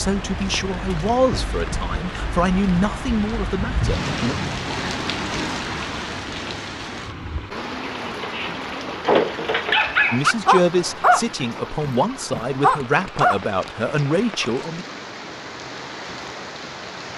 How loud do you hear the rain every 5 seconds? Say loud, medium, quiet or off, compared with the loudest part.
loud, loud, medium, medium.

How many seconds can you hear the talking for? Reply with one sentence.
The talking can be heard for 9 seconds in total.